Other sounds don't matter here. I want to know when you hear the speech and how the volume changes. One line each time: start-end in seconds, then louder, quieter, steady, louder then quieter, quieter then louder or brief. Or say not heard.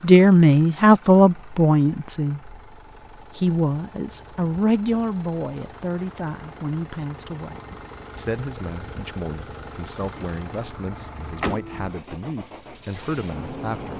0.0-2.5 brief
3.4-13.9 quieter.